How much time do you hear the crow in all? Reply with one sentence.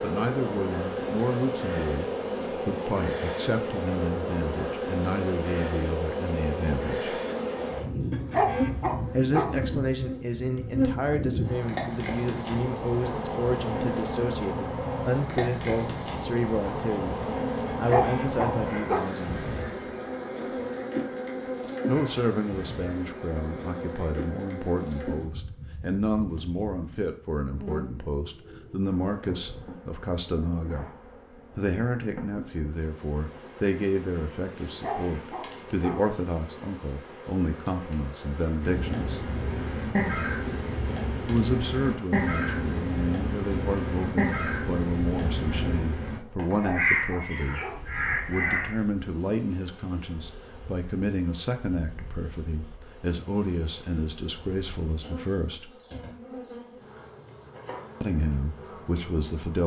You can hear the crow for 10 seconds altogether.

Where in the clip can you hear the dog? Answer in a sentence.
You can hear the dog from 8.1 to 9.6 s, from 17.7 to 19.1 s, from 34.6 to 36.0 s and from 46.5 to 47.9 s.